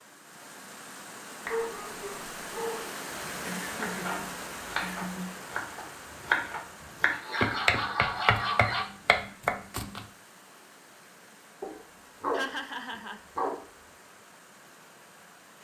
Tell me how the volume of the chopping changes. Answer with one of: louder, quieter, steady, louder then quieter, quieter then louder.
louder.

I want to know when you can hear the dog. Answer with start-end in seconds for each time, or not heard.
1.4-2.9, 7.1-8.8, 11.6-13.7.